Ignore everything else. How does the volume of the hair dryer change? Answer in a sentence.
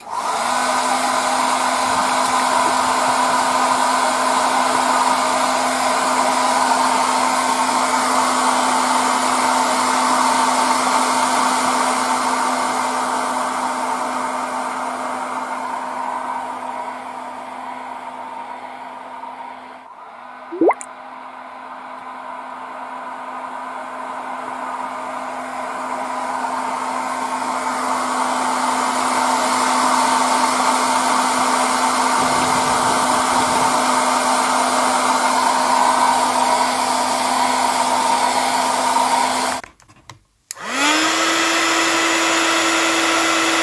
The volume of the hair dryer goes down, then up.